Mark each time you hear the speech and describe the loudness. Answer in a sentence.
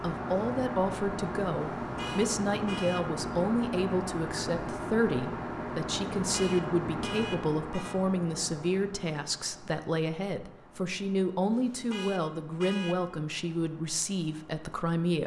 You can hear the speech from 0.0 to 15.2 s, at a steady volume.